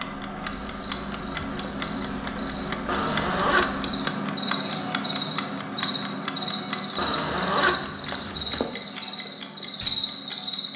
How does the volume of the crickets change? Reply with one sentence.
The loudness of the crickets goes up.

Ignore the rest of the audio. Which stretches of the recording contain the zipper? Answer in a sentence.
The zipper can be heard from 2.9 to 3.7 s and from 7.0 to 8.7 s.